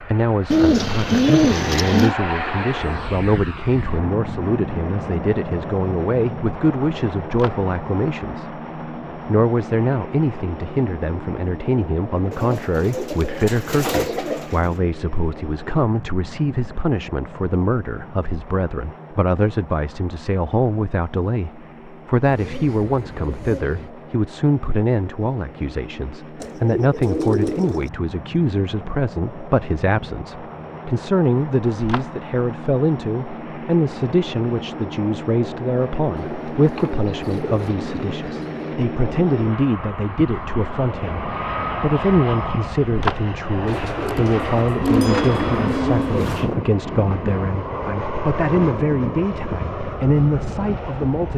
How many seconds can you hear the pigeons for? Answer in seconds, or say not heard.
13 s.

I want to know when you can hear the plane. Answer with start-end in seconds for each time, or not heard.
0.0-51.3.